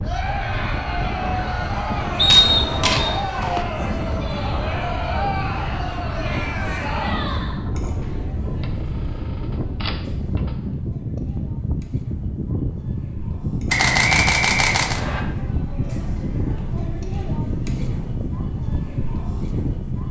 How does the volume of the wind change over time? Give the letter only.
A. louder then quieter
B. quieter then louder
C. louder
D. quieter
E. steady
E.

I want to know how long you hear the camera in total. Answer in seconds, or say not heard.
5 s.